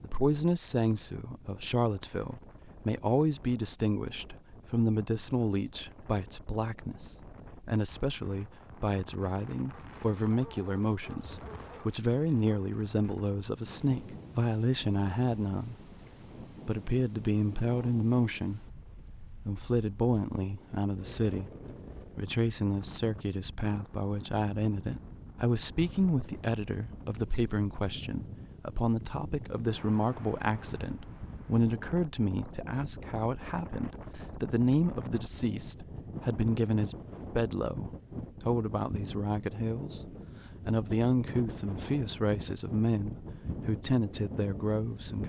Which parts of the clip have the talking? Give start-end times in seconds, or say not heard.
0.0-15.9, 16.6-18.6, 19.3-21.5, 22.1-40.0, 40.6-45.2.